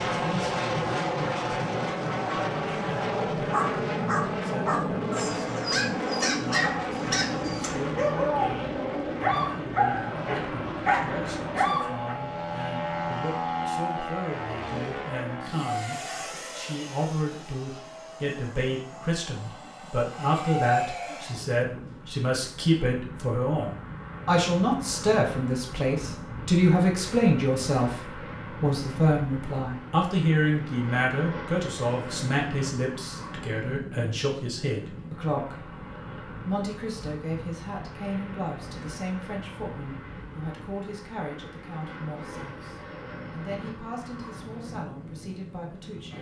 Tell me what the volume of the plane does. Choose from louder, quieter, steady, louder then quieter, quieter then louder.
quieter.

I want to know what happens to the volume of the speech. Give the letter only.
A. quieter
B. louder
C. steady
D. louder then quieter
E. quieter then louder
D.